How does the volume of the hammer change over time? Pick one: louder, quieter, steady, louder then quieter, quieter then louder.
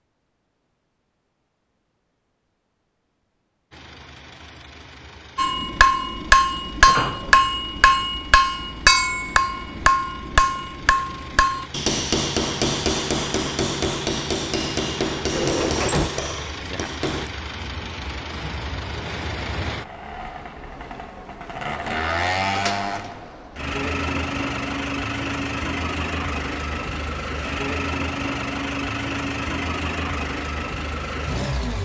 quieter.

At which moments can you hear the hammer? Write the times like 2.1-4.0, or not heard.
5.3-17.3.